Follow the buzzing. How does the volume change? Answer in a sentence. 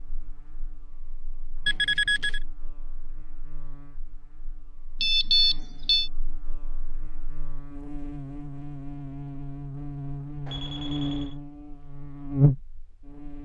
The loudness of the buzzing goes up.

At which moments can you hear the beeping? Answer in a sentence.
You can hear the beeping from 1.6 to 2.4 s, from 5.0 to 6.1 s and from 10.4 to 11.3 s.